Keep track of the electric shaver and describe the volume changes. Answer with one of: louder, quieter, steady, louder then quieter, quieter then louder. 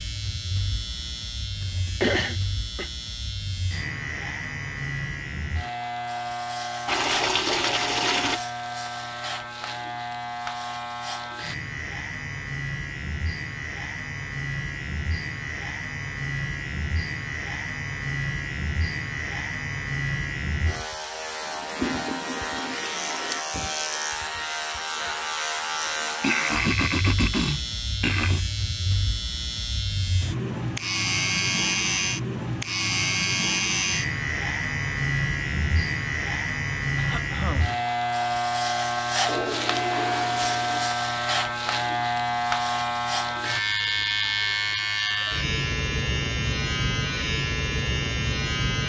louder.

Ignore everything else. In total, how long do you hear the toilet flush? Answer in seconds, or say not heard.
5 s.